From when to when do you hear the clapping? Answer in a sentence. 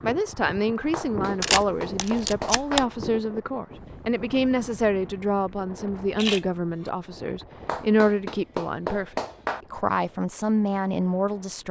You can hear the clapping from 0.9 to 2.9 s and from 7.7 to 9.6 s.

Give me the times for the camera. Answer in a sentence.
The camera can be heard from 1.4 to 2.9 s and from 6.2 to 6.9 s.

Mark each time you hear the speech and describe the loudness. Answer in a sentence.
The speech can be heard from 0.0 to 11.6 s, at a steady volume.